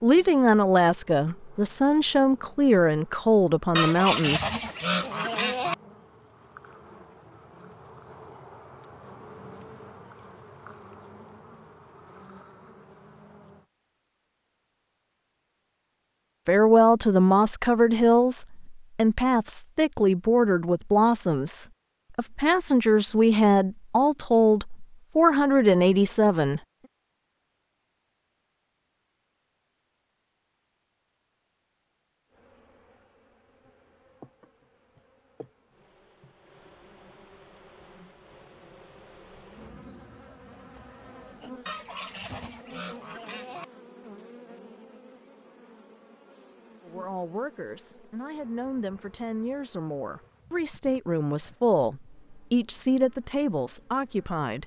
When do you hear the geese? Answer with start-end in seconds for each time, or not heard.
3.8-5.8, 41.6-43.6.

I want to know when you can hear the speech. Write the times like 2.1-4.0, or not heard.
0.0-4.5, 16.4-26.6, 46.9-54.6.